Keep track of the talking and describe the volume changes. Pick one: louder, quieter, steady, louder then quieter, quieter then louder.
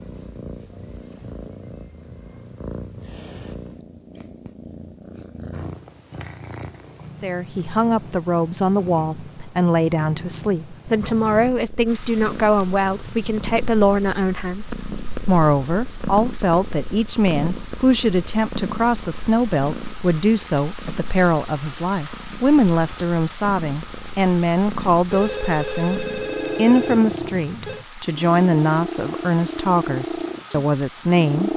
steady.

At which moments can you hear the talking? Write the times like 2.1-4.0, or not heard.
7.2-31.5.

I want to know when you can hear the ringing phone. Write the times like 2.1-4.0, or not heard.
25.1-27.9.